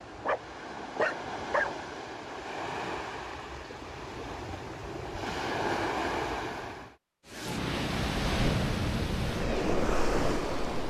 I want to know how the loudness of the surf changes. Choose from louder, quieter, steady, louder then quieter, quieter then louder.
louder.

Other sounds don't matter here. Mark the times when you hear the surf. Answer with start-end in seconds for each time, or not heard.
0.0-10.8.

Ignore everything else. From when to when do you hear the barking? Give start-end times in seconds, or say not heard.
0.2-1.7.